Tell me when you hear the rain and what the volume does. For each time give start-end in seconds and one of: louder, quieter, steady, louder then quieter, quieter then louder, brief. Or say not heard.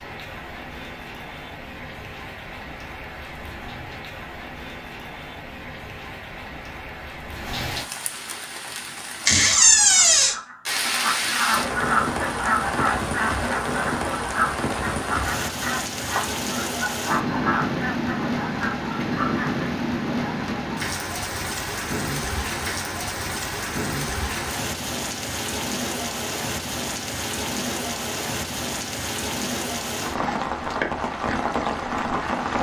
0.0-32.5 louder.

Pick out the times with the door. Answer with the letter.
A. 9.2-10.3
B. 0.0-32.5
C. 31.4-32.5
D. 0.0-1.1
A.